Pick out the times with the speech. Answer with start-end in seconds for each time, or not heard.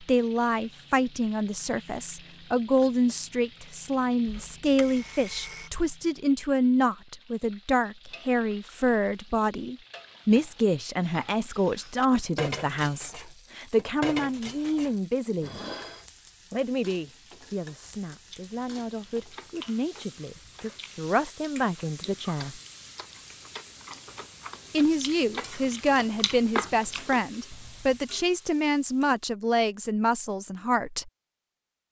0.0-15.6, 16.5-22.6, 24.7-31.1.